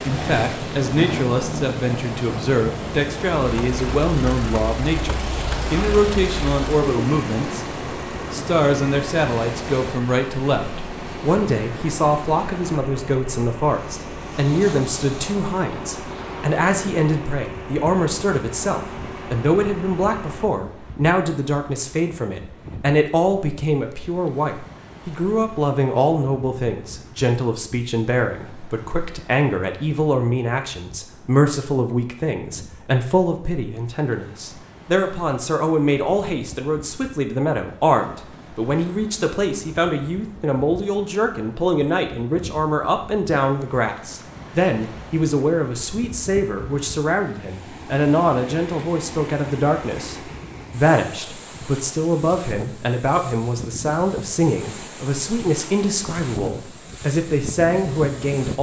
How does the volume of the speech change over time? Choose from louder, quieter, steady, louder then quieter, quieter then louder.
steady.